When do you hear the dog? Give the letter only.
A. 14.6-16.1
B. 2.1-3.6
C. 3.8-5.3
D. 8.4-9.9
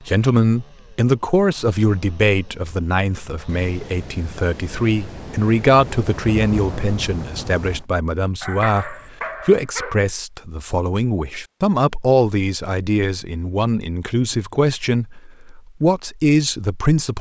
D.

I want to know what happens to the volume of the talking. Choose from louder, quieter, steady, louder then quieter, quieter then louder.
steady.